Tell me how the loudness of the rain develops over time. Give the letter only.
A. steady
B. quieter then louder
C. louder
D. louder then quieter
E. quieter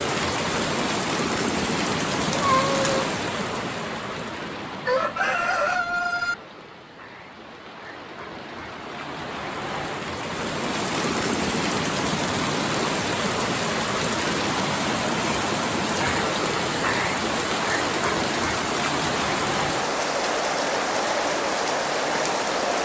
B.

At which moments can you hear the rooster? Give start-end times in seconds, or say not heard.
4.8-6.3.